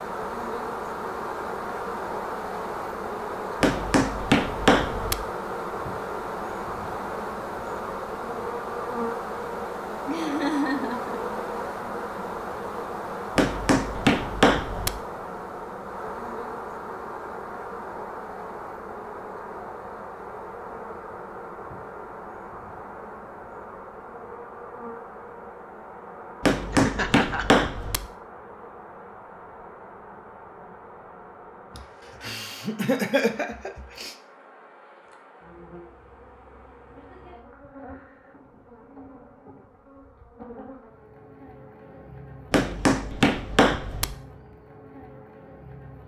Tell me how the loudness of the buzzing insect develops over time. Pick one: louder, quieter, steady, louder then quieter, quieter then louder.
quieter.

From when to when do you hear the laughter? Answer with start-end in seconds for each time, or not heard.
10.1-11.2, 26.7-27.4, 31.8-34.1.